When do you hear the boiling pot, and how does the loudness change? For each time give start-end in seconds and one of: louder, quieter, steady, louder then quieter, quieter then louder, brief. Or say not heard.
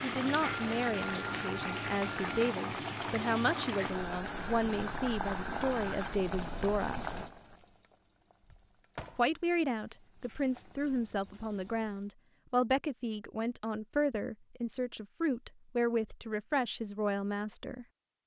0.0-12.2 quieter.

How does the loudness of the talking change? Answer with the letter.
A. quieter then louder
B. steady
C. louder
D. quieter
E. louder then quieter
B.